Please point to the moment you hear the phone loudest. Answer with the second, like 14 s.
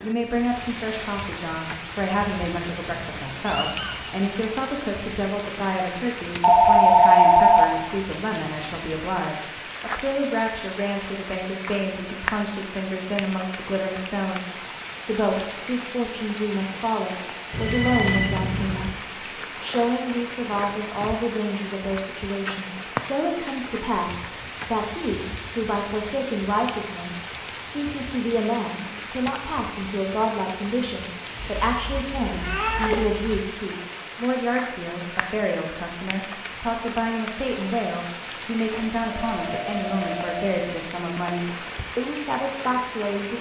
7 s.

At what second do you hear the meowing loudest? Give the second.
33 s.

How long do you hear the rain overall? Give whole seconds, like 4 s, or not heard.
43 s.